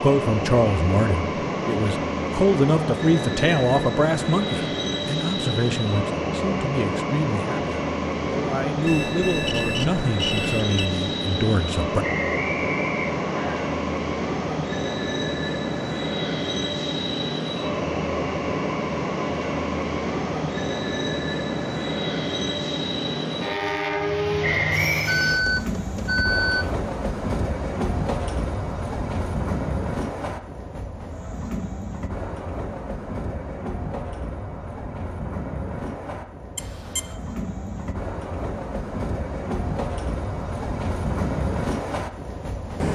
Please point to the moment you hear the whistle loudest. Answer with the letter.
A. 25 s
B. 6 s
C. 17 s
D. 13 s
A.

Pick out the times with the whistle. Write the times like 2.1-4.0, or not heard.
12.0-13.6, 24.4-25.2.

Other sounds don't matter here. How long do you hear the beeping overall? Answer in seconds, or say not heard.
4 s.